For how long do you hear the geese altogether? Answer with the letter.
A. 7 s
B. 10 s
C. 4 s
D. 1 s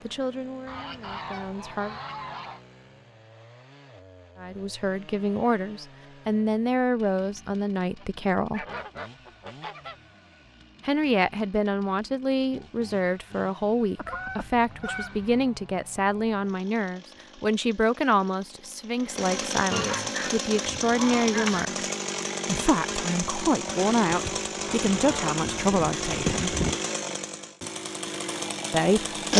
B.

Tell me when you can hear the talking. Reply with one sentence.
You can hear the talking from 0.1 to 1.9 s, from 4.4 to 8.7 s, from 10.8 to 21.9 s, from 22.4 to 26.6 s and from 28.7 to 29.3 s.